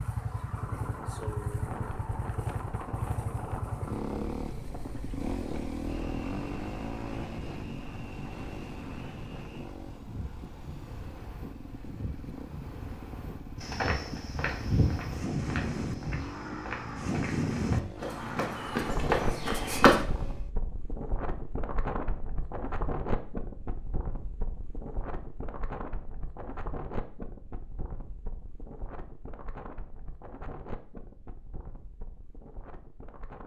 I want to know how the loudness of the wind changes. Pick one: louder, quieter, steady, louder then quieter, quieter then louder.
louder then quieter.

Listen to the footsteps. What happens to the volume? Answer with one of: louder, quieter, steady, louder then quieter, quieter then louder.
quieter then louder.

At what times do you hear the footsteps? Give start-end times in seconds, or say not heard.
13.6-20.0.